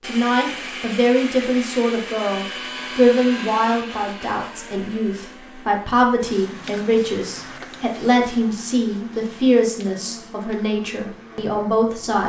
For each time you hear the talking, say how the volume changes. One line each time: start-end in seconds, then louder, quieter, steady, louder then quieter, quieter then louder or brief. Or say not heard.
0.0-12.2 steady.